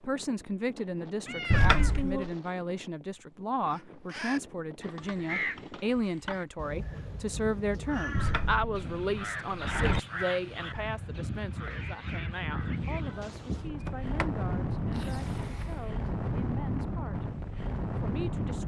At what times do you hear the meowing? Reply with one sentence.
The meowing can be heard from 1.2 to 2.3 s and from 11.7 to 13.2 s.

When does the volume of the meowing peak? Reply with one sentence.
The volume of the meowing peaks at 2 seconds.